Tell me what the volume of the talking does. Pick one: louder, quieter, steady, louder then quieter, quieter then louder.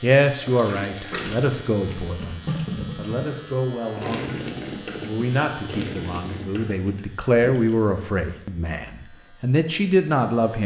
quieter then louder.